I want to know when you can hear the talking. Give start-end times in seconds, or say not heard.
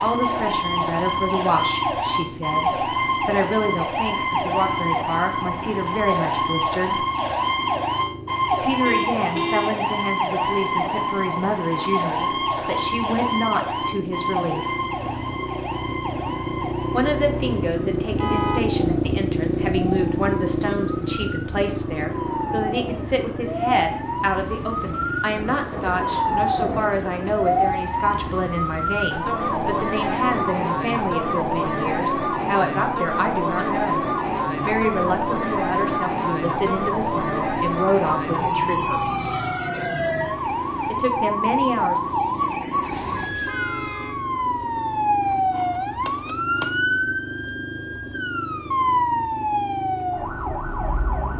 0.0-7.0, 8.6-14.7, 16.9-34.0, 34.6-39.1, 40.9-42.1.